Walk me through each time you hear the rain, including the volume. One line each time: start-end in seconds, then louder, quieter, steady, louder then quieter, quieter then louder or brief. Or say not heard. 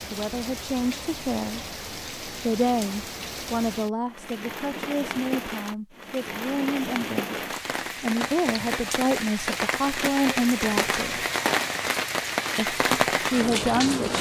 0.0-14.1 louder.